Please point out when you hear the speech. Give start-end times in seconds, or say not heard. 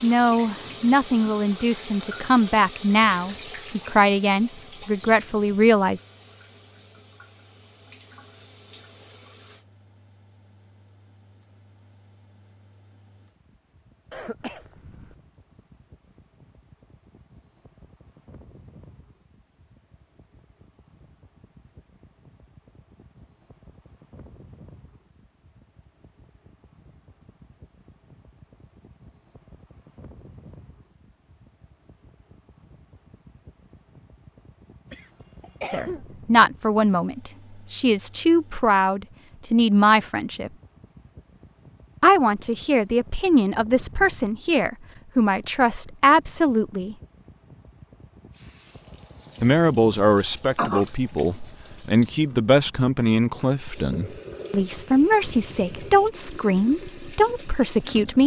0.0-6.0, 35.7-40.5, 42.0-47.0, 49.4-58.2.